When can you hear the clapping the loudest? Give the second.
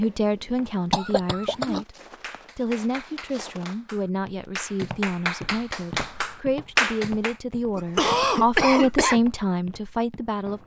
7 s.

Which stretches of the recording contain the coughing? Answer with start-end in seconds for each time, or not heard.
0.9-1.9, 7.8-9.2.